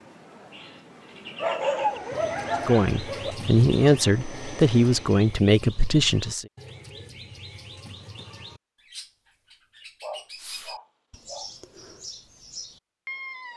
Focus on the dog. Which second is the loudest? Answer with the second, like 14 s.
2 s.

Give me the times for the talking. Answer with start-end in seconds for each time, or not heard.
2.6-6.5.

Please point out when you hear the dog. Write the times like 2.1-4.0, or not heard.
1.4-3.4, 10.0-11.5.